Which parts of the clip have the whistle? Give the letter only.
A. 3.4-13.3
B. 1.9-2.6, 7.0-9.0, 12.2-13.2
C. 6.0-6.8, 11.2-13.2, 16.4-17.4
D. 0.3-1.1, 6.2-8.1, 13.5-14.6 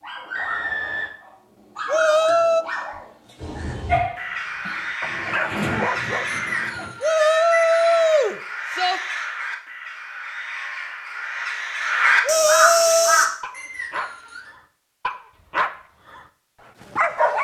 D.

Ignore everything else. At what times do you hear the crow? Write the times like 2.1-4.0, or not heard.
3.4-13.3.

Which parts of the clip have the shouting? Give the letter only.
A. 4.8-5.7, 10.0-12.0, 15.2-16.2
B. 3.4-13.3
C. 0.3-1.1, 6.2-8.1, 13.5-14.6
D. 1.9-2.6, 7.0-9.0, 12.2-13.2
D.